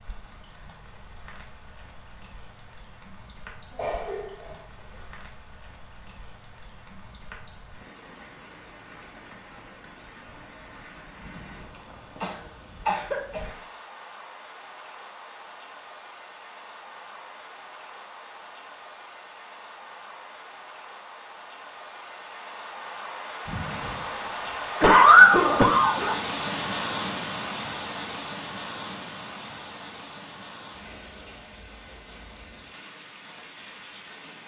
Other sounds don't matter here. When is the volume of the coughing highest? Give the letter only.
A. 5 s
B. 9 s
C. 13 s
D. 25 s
D.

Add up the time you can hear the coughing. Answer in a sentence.
You can hear the coughing for 5 seconds altogether.